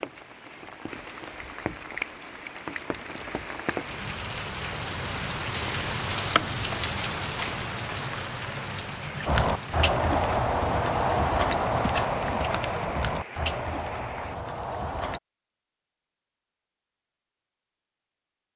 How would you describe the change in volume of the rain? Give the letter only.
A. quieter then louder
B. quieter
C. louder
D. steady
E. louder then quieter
E.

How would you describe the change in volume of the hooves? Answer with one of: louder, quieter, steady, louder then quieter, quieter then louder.
quieter.